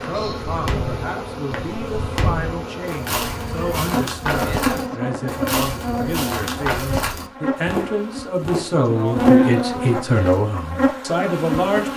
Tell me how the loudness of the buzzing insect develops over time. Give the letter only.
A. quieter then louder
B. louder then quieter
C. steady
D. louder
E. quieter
D.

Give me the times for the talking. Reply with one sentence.
You can hear the talking from 0.1 to 11.9 s.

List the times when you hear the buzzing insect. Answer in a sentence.
You can hear the buzzing insect from 0.0 to 11.9 s.